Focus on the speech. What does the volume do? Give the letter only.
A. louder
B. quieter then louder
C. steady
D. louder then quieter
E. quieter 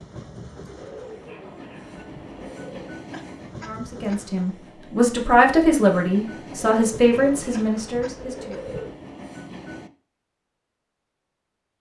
D.